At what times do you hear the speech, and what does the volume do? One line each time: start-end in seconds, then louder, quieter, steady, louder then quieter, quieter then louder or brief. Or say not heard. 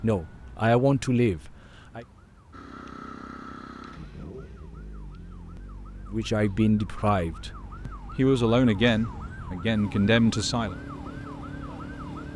0.0-2.0 brief
6.1-10.8 quieter then louder.